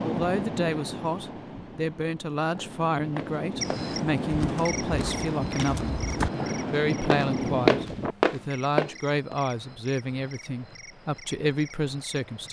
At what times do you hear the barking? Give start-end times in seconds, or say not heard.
not heard.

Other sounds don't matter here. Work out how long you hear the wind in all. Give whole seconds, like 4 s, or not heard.
8 s.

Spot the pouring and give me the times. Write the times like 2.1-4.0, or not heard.
not heard.